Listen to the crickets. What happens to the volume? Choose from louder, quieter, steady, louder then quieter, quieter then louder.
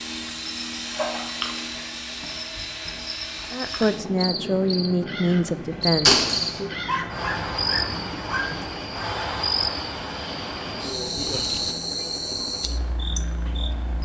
louder.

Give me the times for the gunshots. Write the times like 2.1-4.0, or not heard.
6.0-6.6.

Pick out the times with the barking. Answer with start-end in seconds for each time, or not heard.
6.8-8.6.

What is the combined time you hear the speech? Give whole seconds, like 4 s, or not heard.
3 s.